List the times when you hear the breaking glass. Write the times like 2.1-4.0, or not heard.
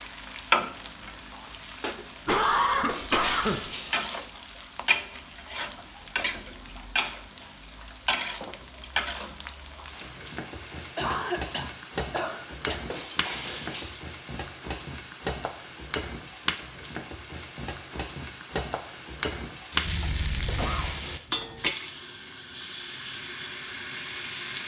2.9-4.3, 12.8-14.1, 20.4-21.3.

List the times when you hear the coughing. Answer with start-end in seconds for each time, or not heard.
2.2-3.6, 10.6-12.8, 19.9-20.9.